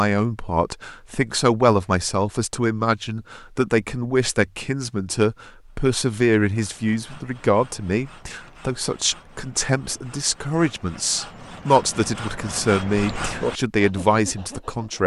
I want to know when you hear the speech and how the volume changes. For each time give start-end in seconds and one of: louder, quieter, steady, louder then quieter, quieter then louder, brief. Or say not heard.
0.0-15.0 steady.